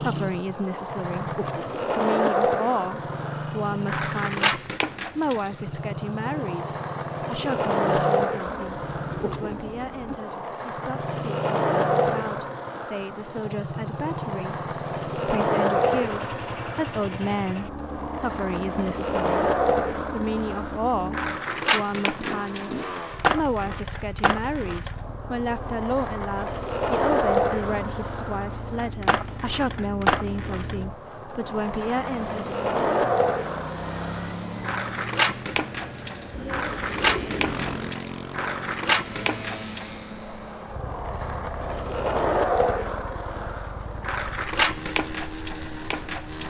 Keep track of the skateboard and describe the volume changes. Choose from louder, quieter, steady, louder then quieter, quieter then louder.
steady.